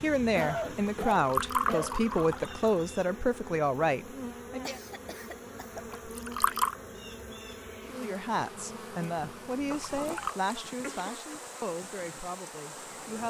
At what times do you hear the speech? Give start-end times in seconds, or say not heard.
0.0-4.8, 7.8-13.2.